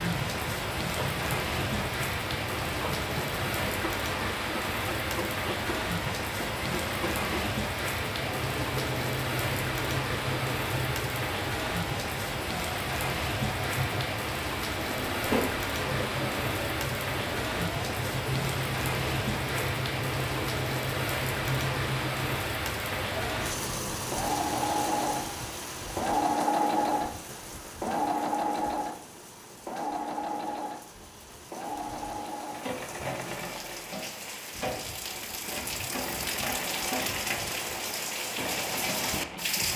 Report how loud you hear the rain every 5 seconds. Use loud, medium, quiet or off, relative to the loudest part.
loud, loud, loud, loud, loud, medium, quiet, loud.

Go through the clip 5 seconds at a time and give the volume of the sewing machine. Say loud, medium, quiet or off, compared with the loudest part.
medium, medium, medium, medium, loud, loud, medium, medium.